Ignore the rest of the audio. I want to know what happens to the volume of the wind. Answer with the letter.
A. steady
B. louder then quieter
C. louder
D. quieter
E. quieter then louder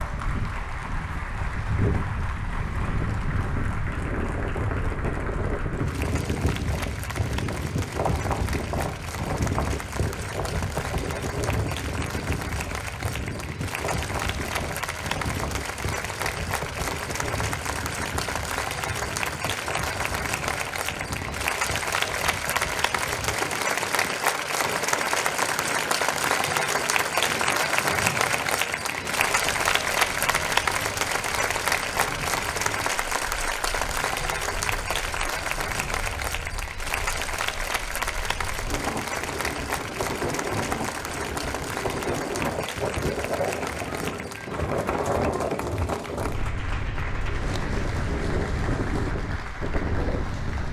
E.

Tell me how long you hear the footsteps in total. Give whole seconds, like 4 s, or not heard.
not heard.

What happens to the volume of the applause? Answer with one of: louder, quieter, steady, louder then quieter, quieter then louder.
louder then quieter.